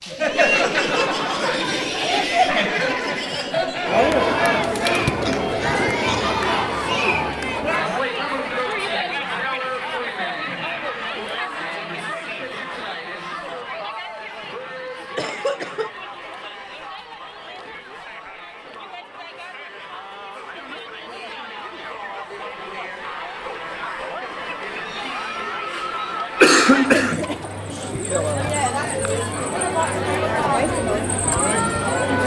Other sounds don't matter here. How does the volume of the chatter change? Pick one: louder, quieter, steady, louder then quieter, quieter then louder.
quieter then louder.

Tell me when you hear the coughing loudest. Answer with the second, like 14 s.
27 s.